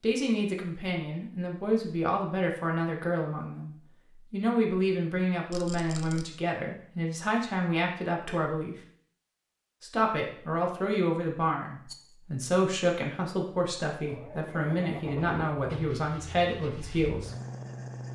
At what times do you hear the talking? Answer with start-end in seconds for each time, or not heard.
0.0-8.8, 9.8-17.3.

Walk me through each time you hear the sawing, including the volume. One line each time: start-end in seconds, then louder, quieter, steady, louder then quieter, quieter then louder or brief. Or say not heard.
not heard.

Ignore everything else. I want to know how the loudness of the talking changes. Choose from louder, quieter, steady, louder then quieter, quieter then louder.
steady.